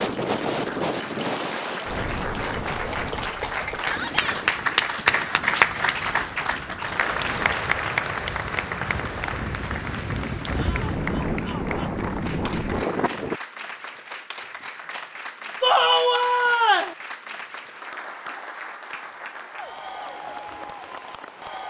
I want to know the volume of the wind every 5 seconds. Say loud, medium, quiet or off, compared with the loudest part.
loud, medium, loud, off, off.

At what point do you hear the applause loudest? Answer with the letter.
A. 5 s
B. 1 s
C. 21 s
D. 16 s
A.